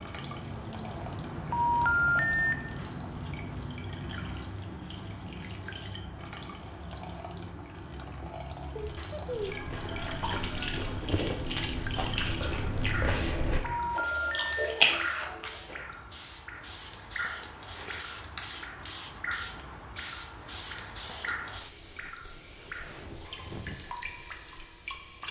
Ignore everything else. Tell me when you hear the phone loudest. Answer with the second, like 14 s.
2 s.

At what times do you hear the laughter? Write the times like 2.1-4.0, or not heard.
8.8-9.7.